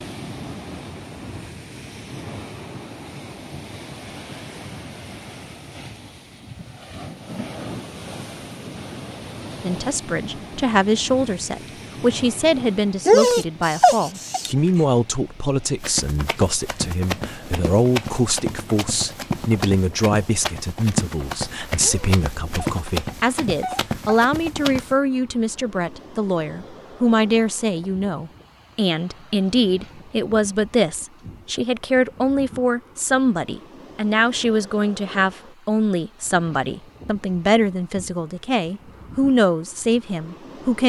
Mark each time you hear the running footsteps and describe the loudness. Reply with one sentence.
The running footsteps can be heard from 15.8 to 24.9 s, at a steady volume.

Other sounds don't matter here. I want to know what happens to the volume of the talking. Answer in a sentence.
The loudness of the talking stays about the same.